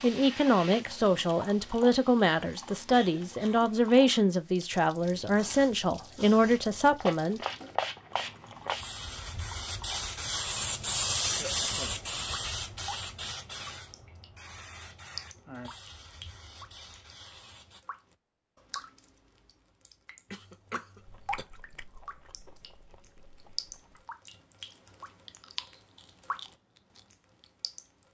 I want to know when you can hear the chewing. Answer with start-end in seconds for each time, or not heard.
21.0-27.4.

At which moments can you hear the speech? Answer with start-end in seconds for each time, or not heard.
0.0-7.4.